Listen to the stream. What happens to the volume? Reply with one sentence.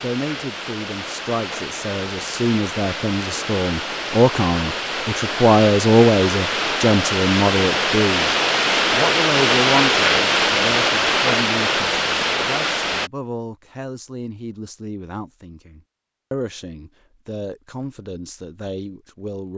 The loudness of the stream goes up.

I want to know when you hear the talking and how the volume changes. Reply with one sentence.
You can hear the talking from 0.0 to 19.5 s, getting louder then quieter.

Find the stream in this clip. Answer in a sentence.
You can hear the stream from 0.0 to 13.1 s.